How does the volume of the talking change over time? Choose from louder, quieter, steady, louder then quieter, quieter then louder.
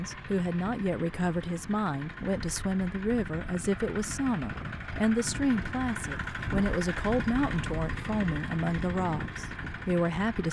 steady.